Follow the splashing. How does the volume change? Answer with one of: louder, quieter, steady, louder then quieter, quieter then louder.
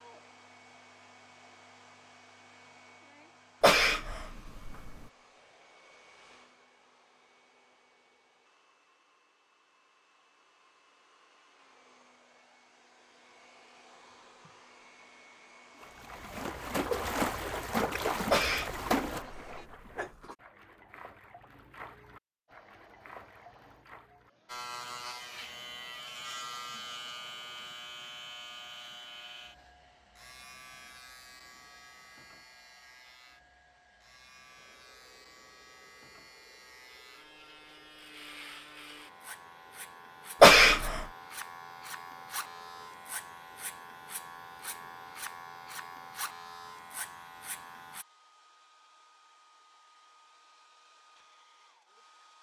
quieter.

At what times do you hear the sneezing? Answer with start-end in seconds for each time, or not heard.
3.6-5.0, 18.3-20.4, 40.4-41.0.